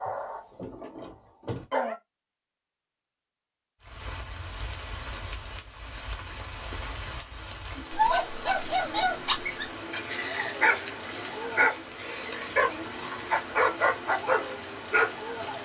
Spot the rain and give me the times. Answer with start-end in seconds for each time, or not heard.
3.8-15.5.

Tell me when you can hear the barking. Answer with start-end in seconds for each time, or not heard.
0.0-1.9, 7.9-15.5.